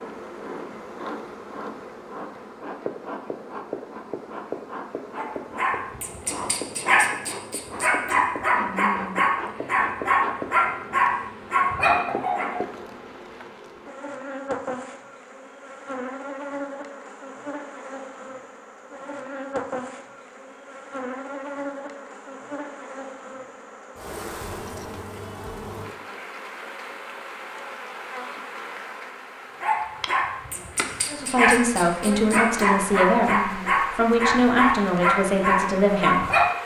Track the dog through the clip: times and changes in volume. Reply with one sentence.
You can hear the dog from 5.2 to 12.6 s, getting louder; and from 29.6 to 36.5 s, getting louder.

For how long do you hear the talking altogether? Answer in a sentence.
You can hear the talking for 5 seconds altogether.